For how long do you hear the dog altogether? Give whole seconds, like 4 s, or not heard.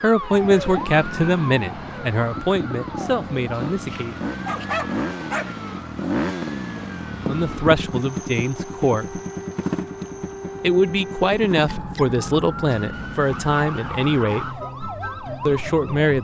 2 s.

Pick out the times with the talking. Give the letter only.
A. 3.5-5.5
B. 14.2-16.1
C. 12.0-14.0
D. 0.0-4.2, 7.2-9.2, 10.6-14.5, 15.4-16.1
D.